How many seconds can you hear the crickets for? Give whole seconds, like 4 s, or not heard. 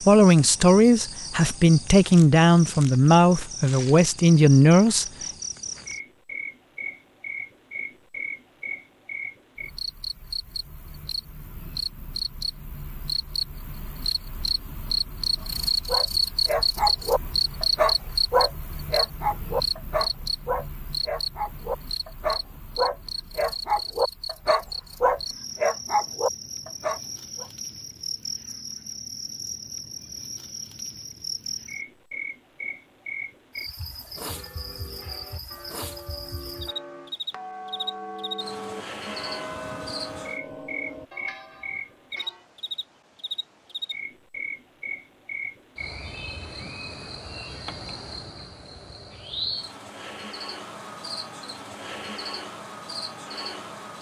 54 s.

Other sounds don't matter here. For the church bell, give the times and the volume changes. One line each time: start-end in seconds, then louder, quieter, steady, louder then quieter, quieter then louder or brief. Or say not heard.
34.1-42.5 louder then quieter.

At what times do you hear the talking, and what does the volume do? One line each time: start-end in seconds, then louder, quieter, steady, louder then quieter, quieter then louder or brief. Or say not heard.
0.0-5.0 steady.